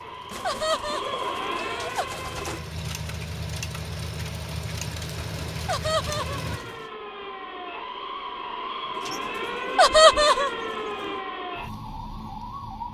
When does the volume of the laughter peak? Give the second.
10 s.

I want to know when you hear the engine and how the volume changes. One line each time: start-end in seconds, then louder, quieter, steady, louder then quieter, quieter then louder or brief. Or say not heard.
0.0-6.6 louder.